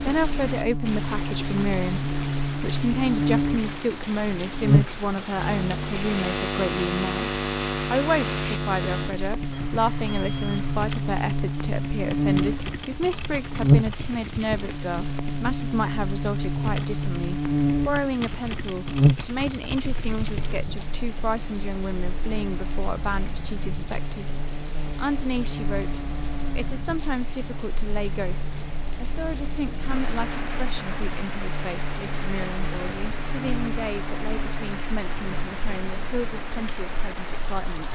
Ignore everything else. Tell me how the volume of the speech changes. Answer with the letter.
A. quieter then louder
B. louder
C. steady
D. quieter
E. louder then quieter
D.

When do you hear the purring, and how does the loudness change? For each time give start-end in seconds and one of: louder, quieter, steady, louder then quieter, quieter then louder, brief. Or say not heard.
not heard.